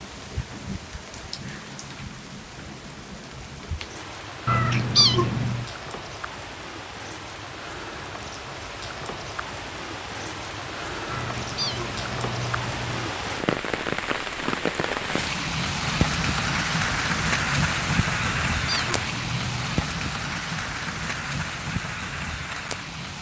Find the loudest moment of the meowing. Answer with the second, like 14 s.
5 s.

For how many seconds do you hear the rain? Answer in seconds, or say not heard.
23 s.